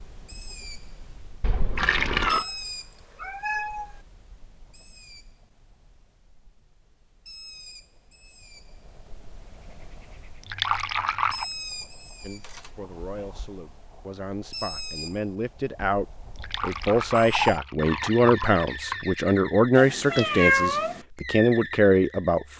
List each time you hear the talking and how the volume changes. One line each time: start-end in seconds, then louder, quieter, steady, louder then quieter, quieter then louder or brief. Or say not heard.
12.2-22.5 louder.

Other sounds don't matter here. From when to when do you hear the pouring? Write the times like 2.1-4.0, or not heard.
1.4-2.5, 10.4-11.4, 16.4-19.1.